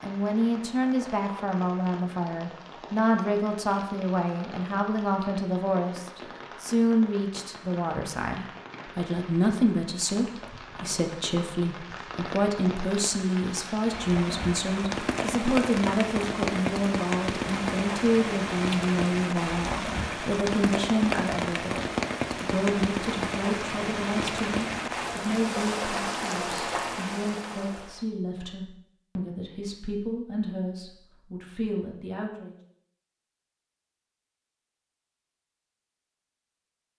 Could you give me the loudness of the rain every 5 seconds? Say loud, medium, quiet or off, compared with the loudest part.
quiet, quiet, medium, loud, loud, loud, off, off.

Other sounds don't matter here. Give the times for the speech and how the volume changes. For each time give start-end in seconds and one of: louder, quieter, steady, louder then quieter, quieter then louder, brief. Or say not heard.
0.0-32.5 quieter.